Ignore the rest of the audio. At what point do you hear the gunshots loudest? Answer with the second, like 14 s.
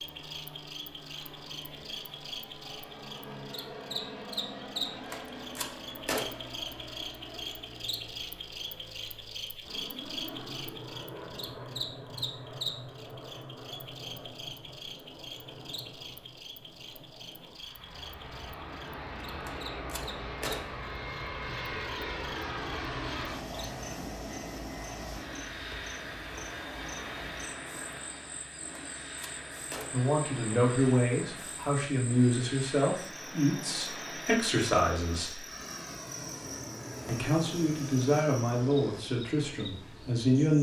6 s.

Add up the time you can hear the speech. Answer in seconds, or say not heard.
9 s.